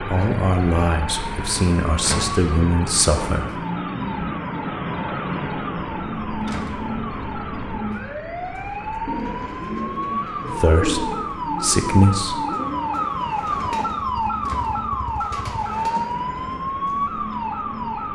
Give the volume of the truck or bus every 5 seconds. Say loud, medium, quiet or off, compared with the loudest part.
loud, loud, medium, medium.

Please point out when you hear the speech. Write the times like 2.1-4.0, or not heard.
0.0-3.5, 10.5-12.4.